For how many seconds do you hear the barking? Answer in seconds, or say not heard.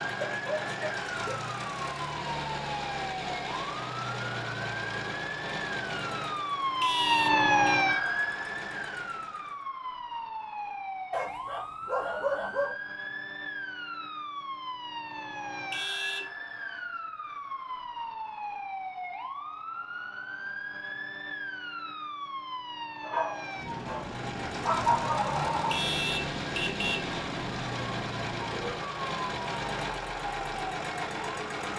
6 s.